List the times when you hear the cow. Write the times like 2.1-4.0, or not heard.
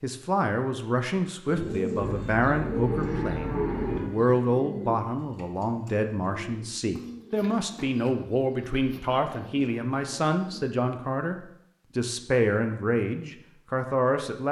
1.9-4.0.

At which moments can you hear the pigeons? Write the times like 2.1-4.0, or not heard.
1.4-10.7.